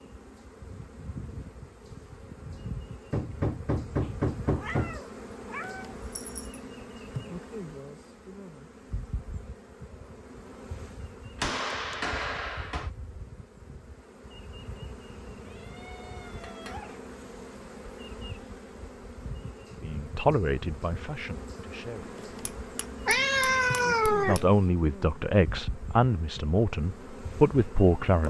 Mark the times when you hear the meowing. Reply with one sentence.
You can hear the meowing from 4.0 to 6.6 s, from 15.4 to 17.0 s and from 23.1 to 24.4 s.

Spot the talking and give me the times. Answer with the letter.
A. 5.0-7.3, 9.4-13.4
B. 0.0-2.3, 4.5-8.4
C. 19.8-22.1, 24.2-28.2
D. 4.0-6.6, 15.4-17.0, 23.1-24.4
C.